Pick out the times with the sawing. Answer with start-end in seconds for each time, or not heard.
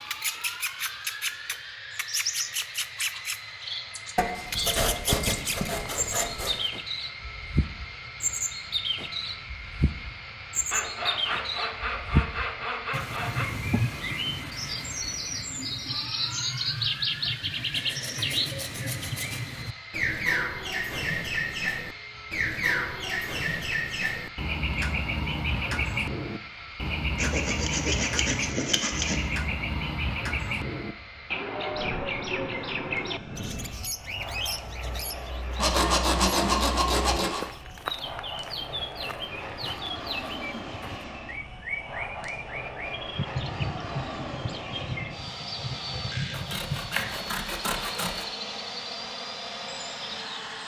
4.2-6.6, 10.7-13.4, 17.7-19.4, 27.1-29.2, 35.5-37.5, 46.3-48.2.